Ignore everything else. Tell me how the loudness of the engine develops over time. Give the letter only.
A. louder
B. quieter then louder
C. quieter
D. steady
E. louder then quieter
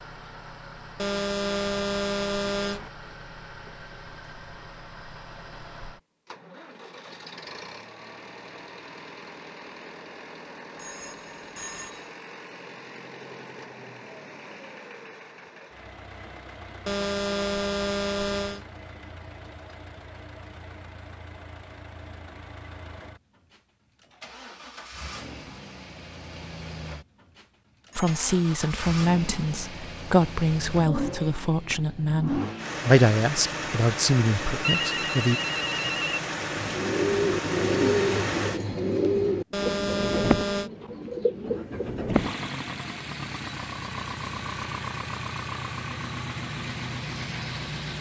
A.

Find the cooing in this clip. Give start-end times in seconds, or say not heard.
36.4-42.0.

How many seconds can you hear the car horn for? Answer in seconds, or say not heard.
5 s.